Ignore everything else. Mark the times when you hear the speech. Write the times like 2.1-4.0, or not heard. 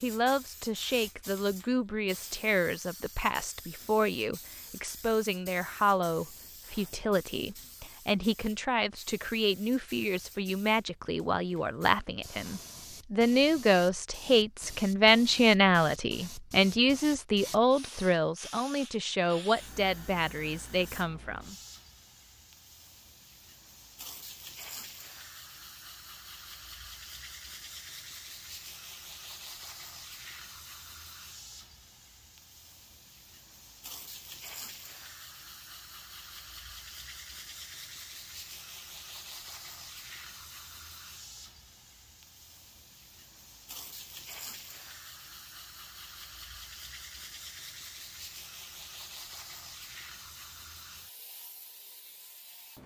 0.0-21.6.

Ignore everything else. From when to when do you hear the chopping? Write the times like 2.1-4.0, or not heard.
not heard.